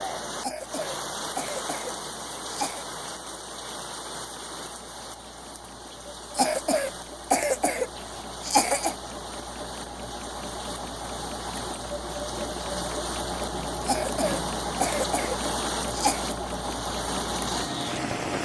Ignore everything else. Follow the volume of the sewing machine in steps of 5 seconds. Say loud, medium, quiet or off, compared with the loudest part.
quiet, medium, loud, loud.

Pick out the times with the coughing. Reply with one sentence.
The coughing can be heard from 0.4 to 2.9 s, from 6.3 to 8.9 s and from 13.8 to 16.2 s.